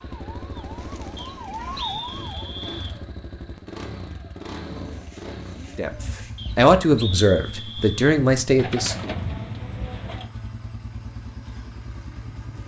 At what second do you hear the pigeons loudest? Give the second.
9 s.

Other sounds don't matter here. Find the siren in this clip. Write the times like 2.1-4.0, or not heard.
0.0-2.7.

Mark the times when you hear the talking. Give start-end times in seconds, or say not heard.
5.8-9.2.